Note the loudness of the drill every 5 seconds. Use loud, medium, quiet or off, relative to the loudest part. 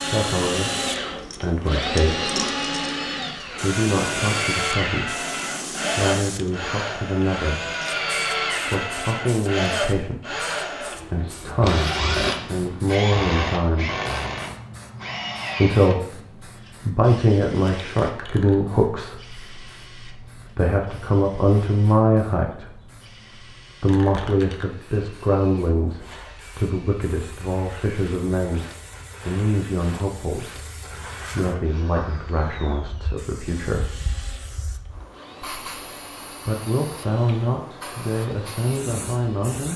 loud, loud, loud, medium, quiet, quiet, quiet, quiet.